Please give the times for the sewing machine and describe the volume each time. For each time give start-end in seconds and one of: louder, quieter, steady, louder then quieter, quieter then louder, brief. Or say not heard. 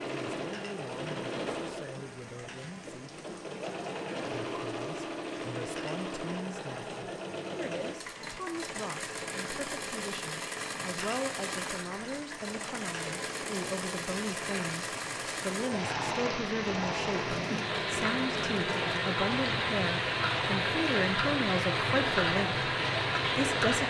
0.0-23.8 steady.